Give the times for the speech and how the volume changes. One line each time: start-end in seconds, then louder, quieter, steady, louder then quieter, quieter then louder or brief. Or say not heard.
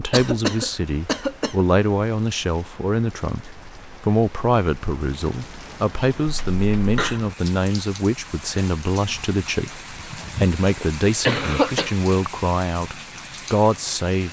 0.0-14.2 steady.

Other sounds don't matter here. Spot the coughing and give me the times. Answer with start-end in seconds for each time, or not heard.
0.1-1.6, 6.2-7.2, 10.2-11.9.